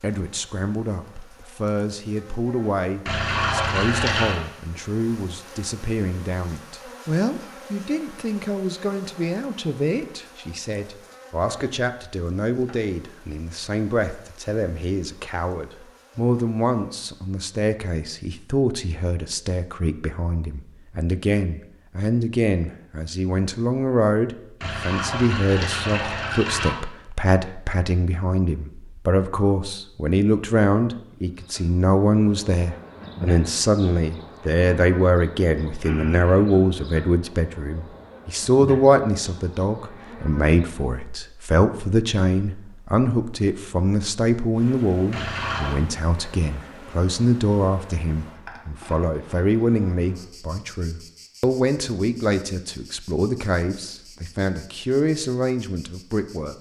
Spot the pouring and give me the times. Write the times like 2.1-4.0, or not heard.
3.0-4.4, 24.6-26.8, 45.1-45.8.